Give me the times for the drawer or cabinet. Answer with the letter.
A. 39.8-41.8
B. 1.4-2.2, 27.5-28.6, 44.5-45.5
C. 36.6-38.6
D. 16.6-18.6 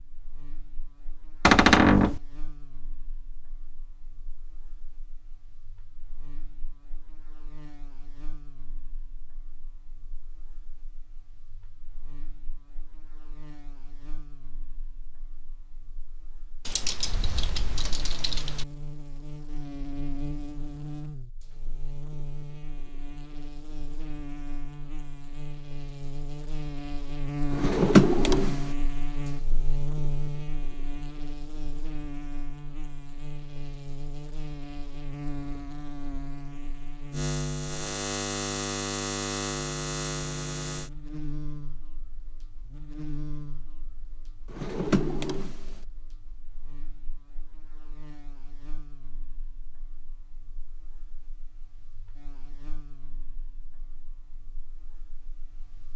B.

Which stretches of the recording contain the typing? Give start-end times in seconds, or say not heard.
16.6-18.6.